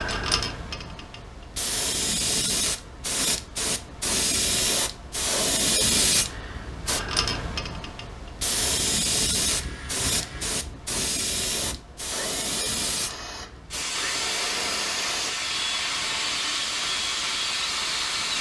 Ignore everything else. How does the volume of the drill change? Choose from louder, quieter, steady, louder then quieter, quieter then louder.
louder.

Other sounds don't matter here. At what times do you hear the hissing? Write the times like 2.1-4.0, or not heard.
0.0-18.3.